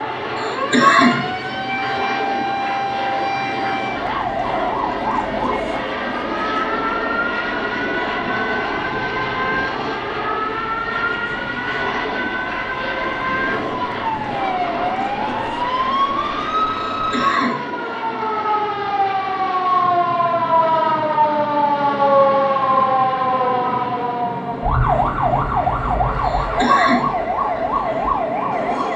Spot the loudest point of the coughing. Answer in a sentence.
The loudest moment of the coughing is at 1 second.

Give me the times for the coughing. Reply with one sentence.
The coughing can be heard from 0.3 to 1.3 s, from 16.9 to 17.6 s and from 26.2 to 27.1 s.